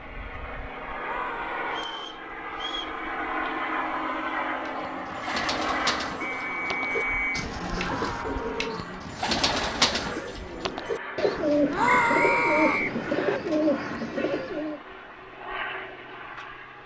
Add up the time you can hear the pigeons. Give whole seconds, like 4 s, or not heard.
10 s.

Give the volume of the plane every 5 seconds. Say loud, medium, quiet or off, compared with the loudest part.
loud, loud, medium, medium.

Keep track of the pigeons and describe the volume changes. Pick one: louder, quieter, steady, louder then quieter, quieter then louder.
louder.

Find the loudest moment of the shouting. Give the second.
12 s.